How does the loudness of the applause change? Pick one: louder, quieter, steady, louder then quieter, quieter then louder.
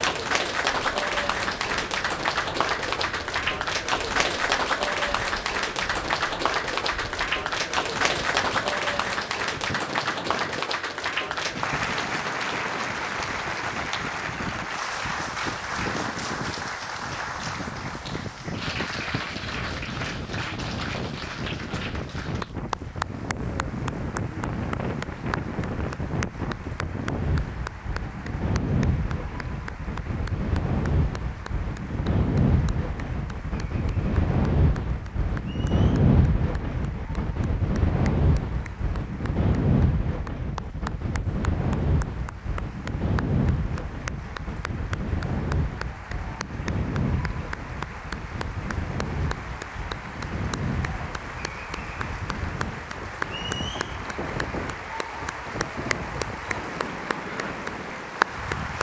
quieter then louder.